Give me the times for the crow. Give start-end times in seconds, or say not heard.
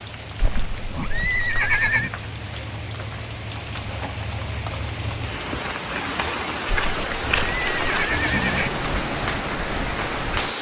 not heard.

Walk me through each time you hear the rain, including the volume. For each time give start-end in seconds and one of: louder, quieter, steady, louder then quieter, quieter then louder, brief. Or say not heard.
0.0-10.5 louder.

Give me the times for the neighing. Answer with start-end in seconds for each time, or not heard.
0.4-2.1, 6.7-8.7.